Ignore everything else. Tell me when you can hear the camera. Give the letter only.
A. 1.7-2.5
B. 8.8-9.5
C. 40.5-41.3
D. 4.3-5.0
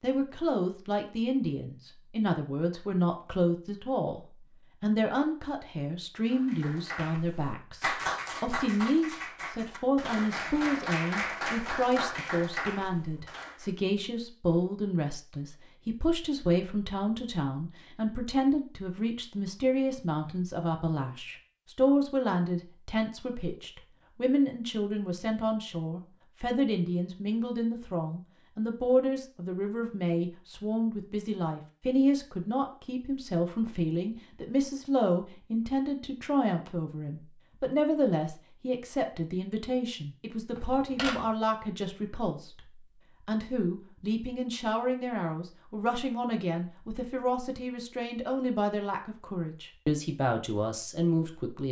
C.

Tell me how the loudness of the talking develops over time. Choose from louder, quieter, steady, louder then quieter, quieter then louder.
steady.